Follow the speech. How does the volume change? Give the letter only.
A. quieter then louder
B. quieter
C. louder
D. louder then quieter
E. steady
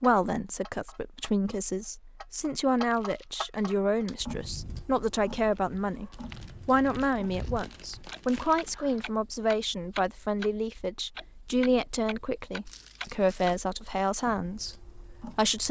E.